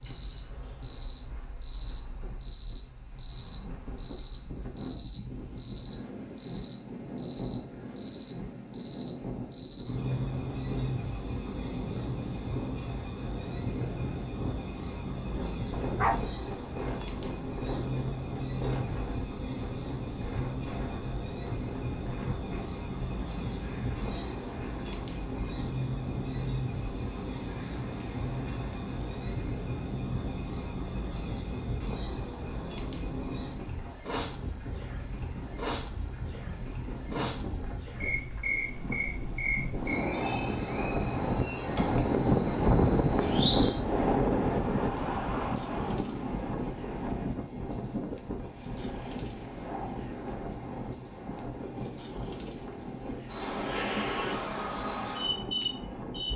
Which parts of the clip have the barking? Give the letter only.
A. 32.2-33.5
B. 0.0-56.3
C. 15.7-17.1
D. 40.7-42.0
C.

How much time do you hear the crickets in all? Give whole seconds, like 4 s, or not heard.
56 s.